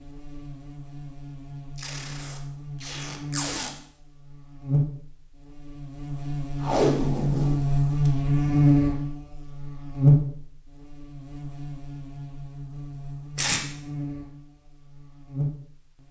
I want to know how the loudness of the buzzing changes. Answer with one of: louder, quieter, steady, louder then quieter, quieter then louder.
louder then quieter.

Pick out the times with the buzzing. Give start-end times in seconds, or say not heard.
0.0-16.0.